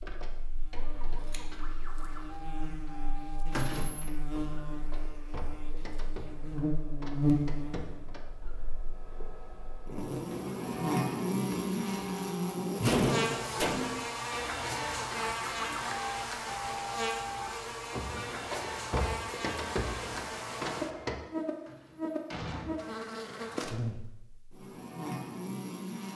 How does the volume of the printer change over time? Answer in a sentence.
The loudness of the printer goes up.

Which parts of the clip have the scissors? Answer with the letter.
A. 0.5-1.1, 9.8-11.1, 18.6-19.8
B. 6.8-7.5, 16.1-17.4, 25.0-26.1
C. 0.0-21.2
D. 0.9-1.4
D.